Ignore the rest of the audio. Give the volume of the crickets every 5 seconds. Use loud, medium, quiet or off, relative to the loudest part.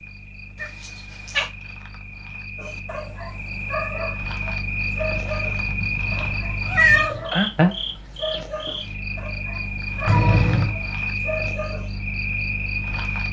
medium, loud, loud.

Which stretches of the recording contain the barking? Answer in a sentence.
The barking can be heard from 2.5 to 11.9 s.